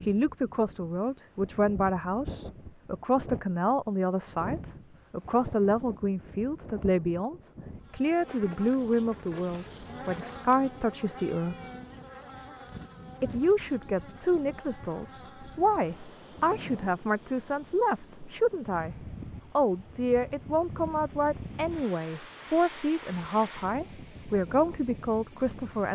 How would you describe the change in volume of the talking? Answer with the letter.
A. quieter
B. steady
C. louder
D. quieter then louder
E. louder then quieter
B.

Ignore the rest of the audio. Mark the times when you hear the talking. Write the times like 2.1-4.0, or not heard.
0.0-11.7, 13.2-25.9.